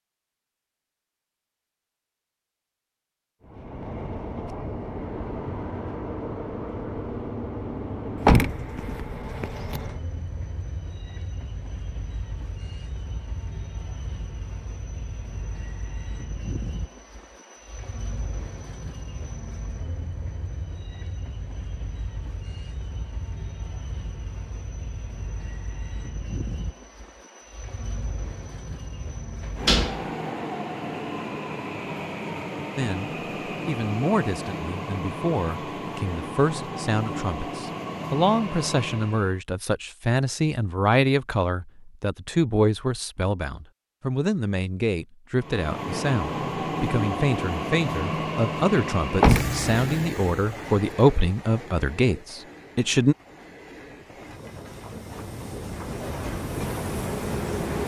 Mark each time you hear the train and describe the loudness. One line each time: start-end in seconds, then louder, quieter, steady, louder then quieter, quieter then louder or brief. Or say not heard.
3.4-39.4 quieter then louder
45.4-57.8 quieter then louder.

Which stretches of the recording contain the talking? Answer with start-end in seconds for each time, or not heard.
32.8-53.1.